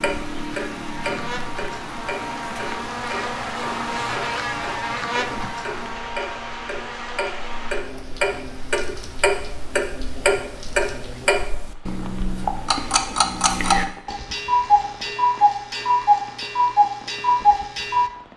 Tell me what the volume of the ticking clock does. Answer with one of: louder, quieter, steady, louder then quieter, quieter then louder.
louder.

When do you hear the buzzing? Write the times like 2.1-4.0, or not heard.
0.1-11.5.